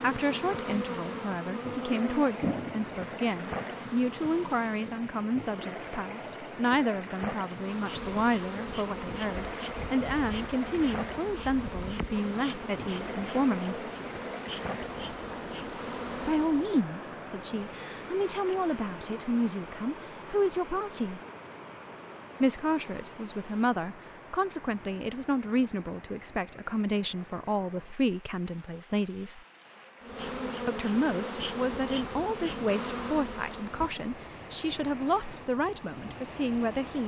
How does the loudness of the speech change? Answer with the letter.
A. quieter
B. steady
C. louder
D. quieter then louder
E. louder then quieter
B.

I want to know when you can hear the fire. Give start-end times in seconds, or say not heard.
not heard.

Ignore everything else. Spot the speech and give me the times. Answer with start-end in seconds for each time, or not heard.
0.0-13.8, 16.2-21.2, 22.4-29.4, 30.6-37.0.